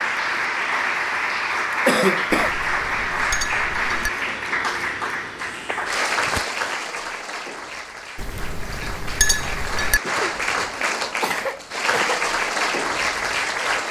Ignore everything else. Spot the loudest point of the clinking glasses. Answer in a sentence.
The loudest moment of the clinking glasses is at 9 seconds.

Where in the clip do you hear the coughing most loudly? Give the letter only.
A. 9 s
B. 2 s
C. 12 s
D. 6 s
B.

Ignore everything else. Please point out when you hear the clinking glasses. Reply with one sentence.
The clinking glasses can be heard from 2.3 to 4.1 s and from 8.2 to 10.0 s.